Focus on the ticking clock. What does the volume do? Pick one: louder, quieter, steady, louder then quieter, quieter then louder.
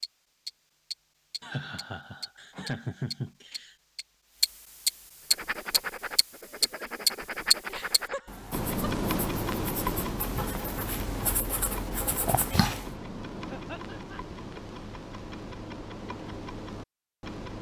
louder then quieter.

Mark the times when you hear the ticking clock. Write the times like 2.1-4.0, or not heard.
0.0-17.5.